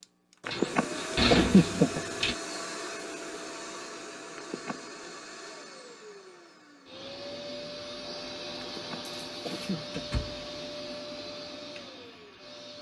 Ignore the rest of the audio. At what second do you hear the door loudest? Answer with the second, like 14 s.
1 s.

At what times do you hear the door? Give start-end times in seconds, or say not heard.
0.5-2.4, 9.6-10.4.